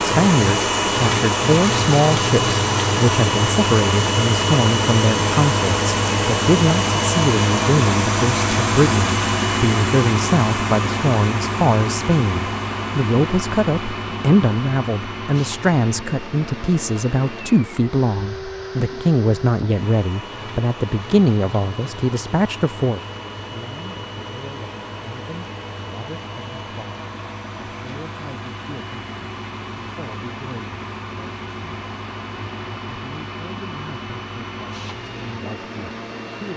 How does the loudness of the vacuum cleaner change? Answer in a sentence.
The loudness of the vacuum cleaner goes down.